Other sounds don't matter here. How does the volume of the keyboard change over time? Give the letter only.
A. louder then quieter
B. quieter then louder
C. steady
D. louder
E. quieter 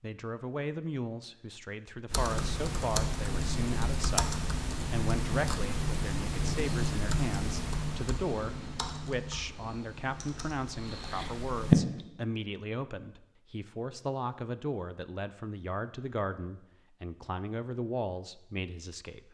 E.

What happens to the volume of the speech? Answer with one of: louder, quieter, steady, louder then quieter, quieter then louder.
steady.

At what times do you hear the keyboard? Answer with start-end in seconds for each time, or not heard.
2.1-12.1.